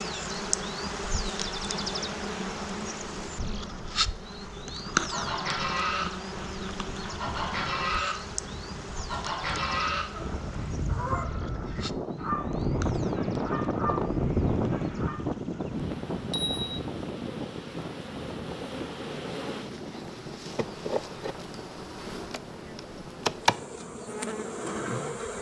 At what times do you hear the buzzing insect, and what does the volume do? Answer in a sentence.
The buzzing insect can be heard from 0.0 to 25.3 s, getting quieter then louder.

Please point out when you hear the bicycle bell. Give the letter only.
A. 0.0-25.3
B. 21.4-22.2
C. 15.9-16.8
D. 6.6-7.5
C.